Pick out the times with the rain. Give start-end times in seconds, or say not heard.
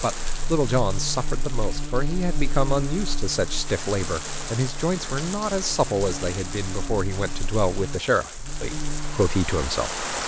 0.0-10.2.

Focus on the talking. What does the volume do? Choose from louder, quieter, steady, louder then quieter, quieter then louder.
steady.